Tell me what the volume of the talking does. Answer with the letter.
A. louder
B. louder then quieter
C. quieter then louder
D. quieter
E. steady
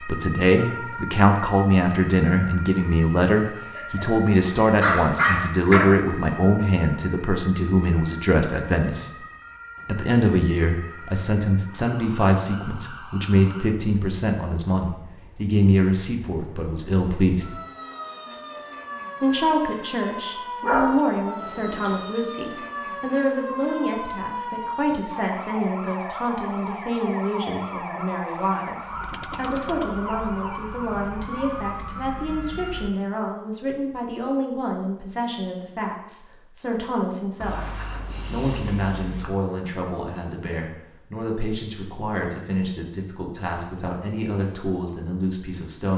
D.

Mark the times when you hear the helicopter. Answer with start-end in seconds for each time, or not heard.
not heard.